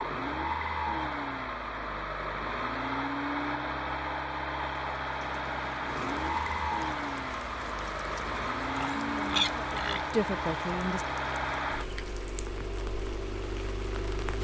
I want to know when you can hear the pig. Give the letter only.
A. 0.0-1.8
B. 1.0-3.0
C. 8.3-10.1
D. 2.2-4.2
C.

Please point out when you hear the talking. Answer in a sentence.
You can hear the talking from 9.0 to 11.1 s.